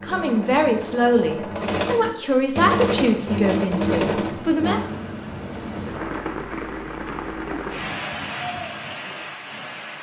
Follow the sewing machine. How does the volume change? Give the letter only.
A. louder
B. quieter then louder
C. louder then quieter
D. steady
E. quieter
C.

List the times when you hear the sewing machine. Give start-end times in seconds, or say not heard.
0.0-6.3.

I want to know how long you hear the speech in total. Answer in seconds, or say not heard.
5 s.